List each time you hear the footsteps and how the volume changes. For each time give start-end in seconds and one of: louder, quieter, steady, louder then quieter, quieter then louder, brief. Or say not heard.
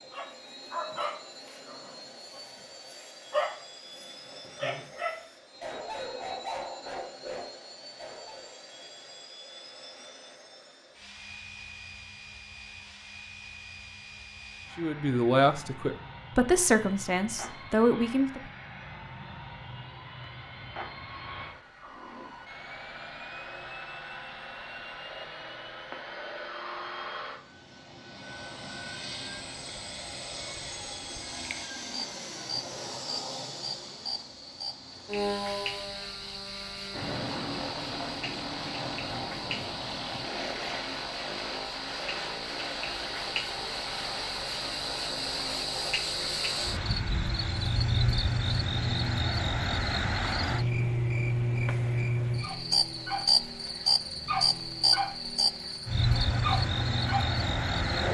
not heard.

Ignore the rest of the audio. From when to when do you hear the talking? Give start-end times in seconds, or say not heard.
14.8-18.4.